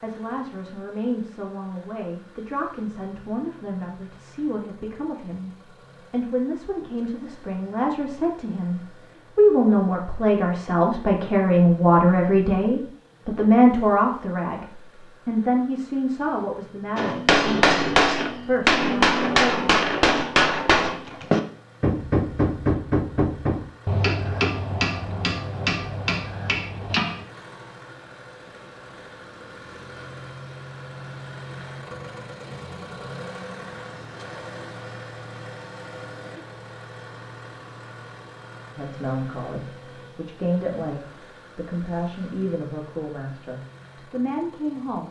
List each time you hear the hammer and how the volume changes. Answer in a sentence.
You can hear the hammer from 16.9 to 27.2 s, getting quieter.